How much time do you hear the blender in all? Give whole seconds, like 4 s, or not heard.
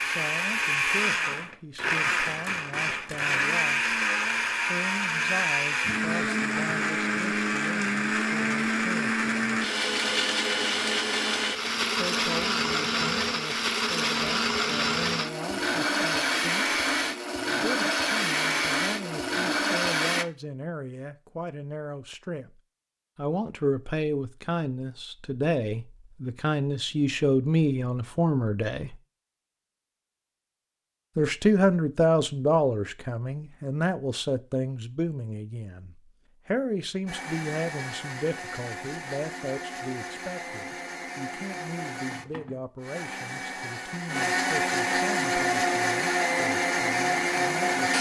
31 s.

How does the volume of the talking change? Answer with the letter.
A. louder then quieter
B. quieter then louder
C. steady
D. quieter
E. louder
A.